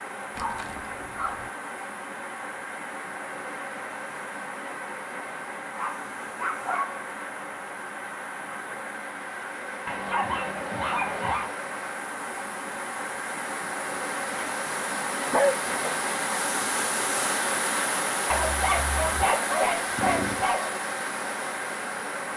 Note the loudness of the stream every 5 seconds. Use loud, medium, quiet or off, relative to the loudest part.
medium, medium, medium, loud, loud.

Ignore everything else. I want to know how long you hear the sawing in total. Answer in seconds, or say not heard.
not heard.